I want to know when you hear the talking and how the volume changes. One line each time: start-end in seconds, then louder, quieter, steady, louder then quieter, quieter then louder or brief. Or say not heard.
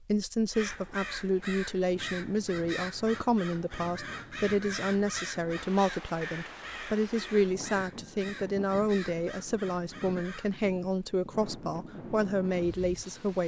0.1-13.4 steady.